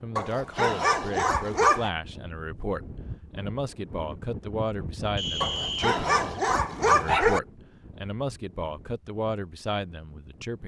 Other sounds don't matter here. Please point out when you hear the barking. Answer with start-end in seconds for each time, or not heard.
0.1-1.9, 5.4-7.4.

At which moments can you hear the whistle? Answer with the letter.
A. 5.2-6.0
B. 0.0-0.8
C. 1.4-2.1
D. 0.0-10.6
A.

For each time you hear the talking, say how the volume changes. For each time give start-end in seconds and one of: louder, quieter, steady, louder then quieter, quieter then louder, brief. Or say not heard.
0.0-10.6 steady.